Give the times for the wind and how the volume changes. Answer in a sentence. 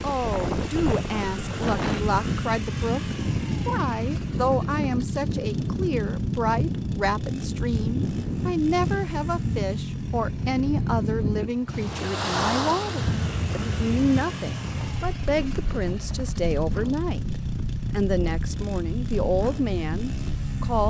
The wind can be heard from 0.0 to 20.8 s, getting quieter.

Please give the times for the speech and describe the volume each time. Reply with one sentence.
The speech can be heard from 0.0 to 20.8 s, at a steady volume.